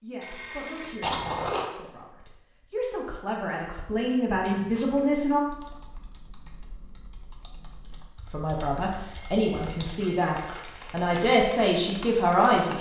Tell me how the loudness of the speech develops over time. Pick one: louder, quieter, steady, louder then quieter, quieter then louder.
louder.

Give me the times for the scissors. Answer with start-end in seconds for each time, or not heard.
1.0-1.6, 4.3-5.1, 9.5-10.9.